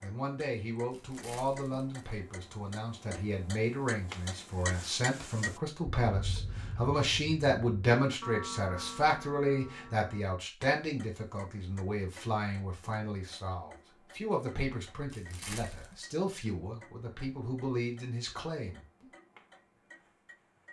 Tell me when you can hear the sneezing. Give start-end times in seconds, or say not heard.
not heard.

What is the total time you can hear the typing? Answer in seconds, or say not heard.
not heard.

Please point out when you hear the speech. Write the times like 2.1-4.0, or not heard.
0.0-19.1.